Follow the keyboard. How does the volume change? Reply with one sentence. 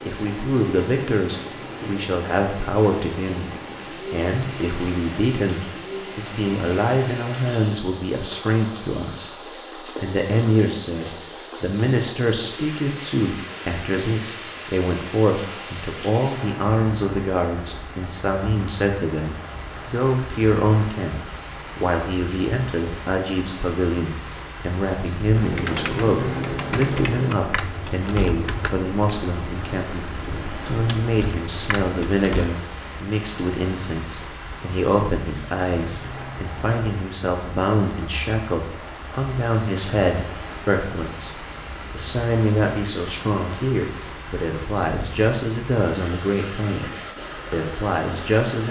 The volume of the keyboard goes down.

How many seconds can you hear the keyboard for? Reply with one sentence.
You can hear the keyboard for 7 seconds altogether.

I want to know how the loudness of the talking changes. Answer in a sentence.
The volume of the talking stays about the same.